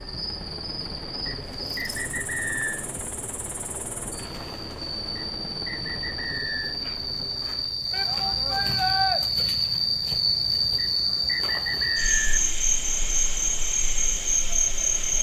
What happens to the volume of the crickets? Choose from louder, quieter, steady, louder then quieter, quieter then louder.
louder.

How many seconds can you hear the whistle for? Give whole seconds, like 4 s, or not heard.
5 s.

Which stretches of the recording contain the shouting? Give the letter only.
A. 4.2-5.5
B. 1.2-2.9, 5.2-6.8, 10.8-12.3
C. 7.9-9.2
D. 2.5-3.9
C.